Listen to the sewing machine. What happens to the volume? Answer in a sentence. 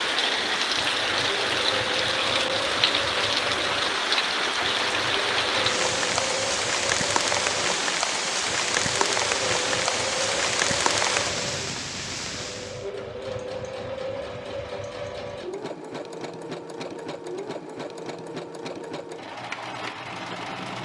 The volume of the sewing machine stays about the same.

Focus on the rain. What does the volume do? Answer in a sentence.
The loudness of the rain stays about the same.